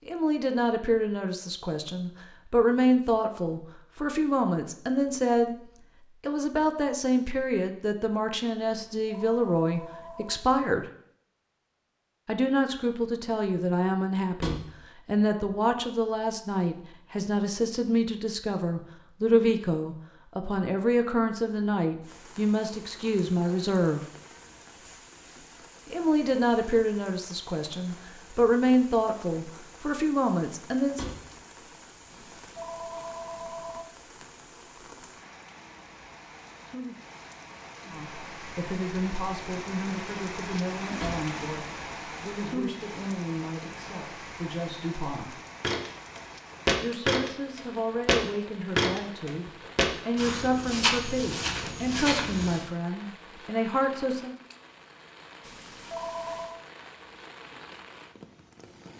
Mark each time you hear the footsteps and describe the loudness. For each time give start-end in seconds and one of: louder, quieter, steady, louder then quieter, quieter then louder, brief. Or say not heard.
45.6-52.6 quieter.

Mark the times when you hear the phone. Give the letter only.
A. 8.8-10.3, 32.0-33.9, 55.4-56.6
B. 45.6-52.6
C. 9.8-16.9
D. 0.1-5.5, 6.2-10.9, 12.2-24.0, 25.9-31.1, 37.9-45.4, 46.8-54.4
A.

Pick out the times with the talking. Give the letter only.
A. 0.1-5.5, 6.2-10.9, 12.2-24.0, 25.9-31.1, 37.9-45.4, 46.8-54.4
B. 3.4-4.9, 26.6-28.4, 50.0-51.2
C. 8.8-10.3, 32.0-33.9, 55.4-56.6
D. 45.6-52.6
A.